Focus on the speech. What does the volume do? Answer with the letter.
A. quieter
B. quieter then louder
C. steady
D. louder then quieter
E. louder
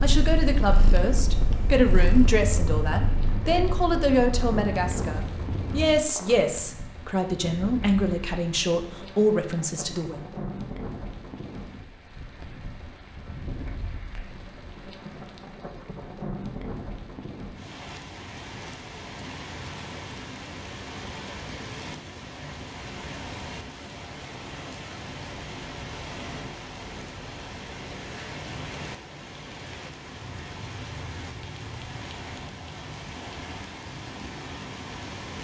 C.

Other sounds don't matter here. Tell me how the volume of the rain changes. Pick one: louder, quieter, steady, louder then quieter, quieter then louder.
steady.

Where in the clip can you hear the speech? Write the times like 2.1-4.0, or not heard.
0.0-10.2.